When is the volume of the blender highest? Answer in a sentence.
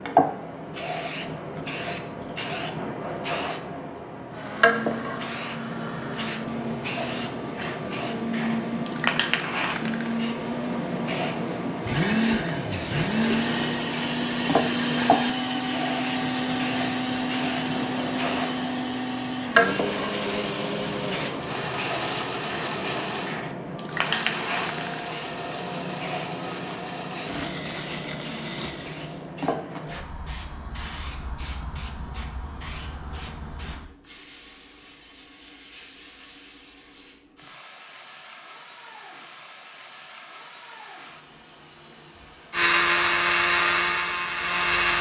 The volume of the blender peaks at 43 seconds.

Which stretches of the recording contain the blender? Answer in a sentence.
You can hear the blender from 4.3 to 29.9 s and from 42.5 to 44.9 s.